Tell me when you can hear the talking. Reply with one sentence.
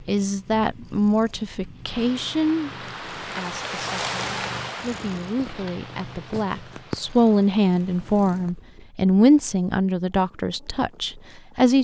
You can hear the talking from 0.1 to 11.7 s.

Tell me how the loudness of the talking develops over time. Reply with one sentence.
The volume of the talking goes down, then up.